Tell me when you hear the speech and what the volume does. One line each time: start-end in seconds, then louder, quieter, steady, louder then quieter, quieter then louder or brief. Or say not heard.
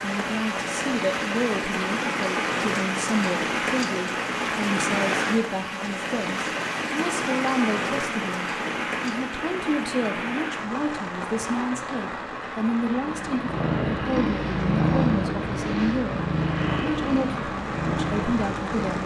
0.0-19.0 steady.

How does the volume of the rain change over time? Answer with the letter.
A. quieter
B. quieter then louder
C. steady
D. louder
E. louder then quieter
A.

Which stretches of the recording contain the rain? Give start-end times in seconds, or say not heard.
0.0-19.0.